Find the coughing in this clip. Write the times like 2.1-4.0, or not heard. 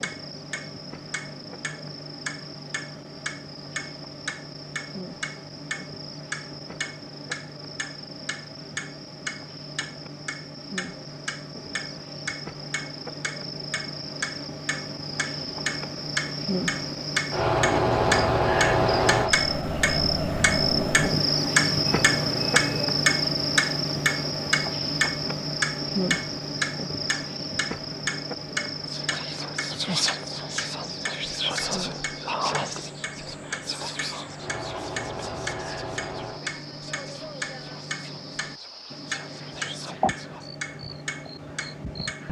not heard.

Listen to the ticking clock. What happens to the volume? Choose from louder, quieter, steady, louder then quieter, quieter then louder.
louder then quieter.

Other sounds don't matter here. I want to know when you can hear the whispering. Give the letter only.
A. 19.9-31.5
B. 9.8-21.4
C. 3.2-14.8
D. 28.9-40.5
D.